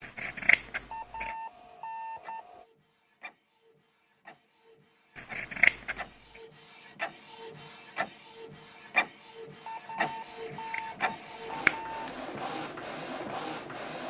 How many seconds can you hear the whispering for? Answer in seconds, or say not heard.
not heard.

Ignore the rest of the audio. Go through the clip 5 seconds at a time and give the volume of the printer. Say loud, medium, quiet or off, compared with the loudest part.
quiet, loud, loud.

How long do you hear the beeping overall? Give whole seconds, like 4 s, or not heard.
4 s.